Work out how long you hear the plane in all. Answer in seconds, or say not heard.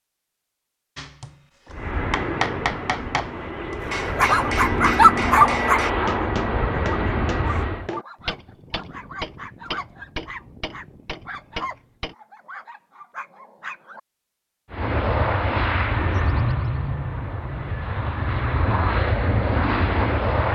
12 s.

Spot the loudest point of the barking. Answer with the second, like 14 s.
5 s.